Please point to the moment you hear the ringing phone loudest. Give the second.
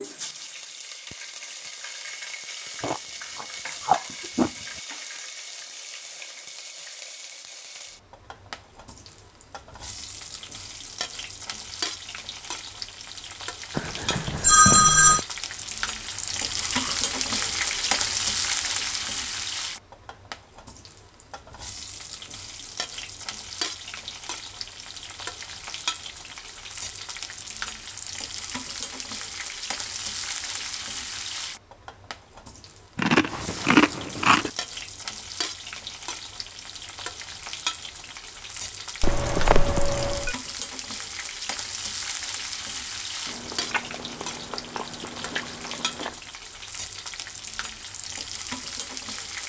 15 s.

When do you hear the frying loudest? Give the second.
18 s.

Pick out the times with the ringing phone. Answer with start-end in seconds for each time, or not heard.
13.8-15.2, 39.0-40.4.